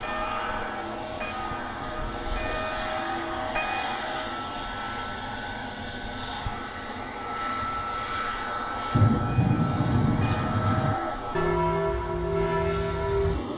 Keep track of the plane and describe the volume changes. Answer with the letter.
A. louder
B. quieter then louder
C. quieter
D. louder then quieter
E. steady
E.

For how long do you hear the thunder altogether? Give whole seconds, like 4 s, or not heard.
2 s.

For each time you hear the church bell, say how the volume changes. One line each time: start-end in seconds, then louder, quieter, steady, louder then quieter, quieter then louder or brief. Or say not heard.
0.0-4.4 louder
9.2-13.3 louder.